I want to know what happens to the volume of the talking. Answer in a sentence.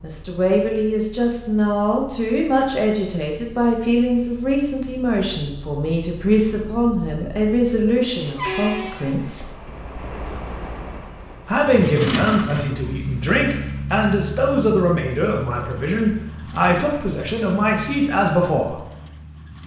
The volume of the talking stays about the same.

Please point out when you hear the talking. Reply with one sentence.
You can hear the talking from 0.0 to 9.6 s and from 11.4 to 18.8 s.